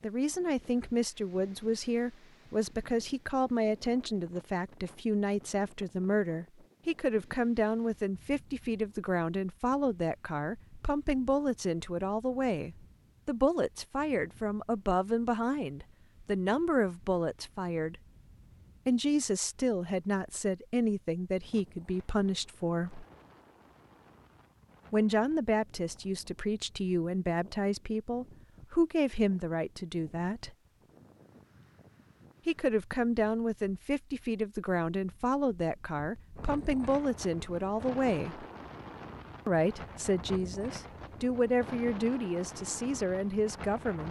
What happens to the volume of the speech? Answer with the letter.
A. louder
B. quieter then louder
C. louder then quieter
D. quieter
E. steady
E.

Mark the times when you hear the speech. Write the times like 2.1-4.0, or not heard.
0.0-17.9, 18.9-23.1, 24.9-30.5, 32.5-38.5, 39.5-44.0.